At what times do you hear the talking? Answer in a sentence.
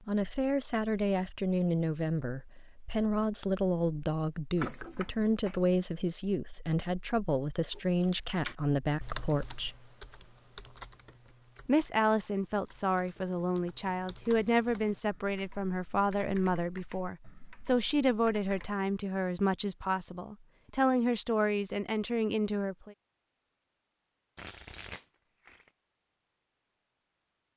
You can hear the talking from 0.1 to 9.8 s and from 11.7 to 22.9 s.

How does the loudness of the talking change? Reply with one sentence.
The volume of the talking stays about the same.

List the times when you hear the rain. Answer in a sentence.
You can't hear the rain here.